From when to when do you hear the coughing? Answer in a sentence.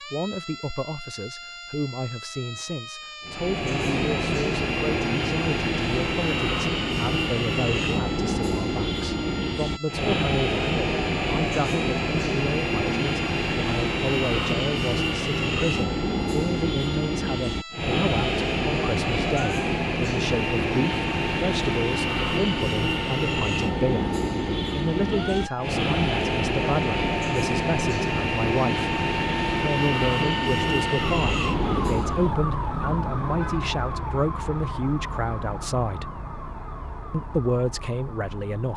The coughing can't be heard in this clip.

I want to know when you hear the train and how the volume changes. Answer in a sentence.
The train can be heard from 3.2 to 32.4 s, at a steady volume.